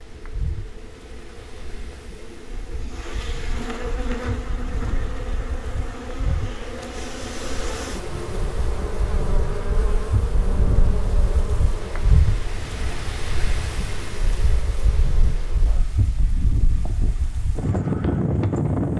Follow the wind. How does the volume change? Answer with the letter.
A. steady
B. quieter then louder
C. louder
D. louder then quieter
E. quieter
C.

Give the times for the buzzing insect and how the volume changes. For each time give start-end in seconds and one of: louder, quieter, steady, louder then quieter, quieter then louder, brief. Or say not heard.
0.0-18.9 louder then quieter.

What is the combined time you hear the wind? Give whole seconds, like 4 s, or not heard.
19 s.